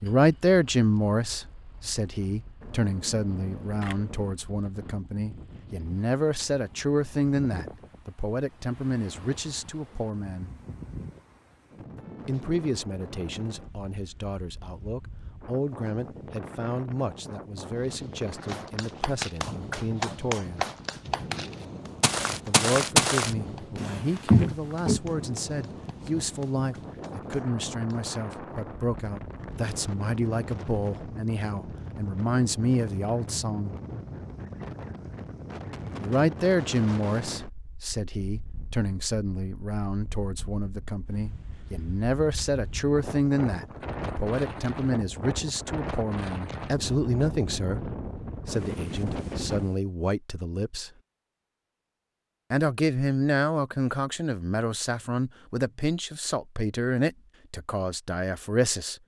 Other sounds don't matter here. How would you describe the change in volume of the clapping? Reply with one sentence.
The volume of the clapping goes down.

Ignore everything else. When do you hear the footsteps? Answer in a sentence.
The footsteps can be heard from 17.8 to 25.0 s.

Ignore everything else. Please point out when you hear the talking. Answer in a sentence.
The talking can be heard from 0.0 to 10.5 s, from 12.2 to 20.6 s, from 22.4 to 33.8 s, from 36.0 to 50.9 s and from 52.5 to 59.0 s.